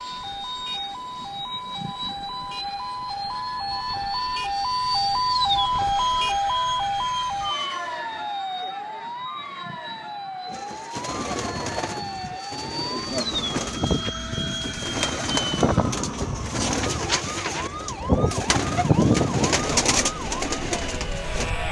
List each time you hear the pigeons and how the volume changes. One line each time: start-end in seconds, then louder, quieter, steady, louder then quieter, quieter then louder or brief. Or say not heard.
10.4-21.5 louder.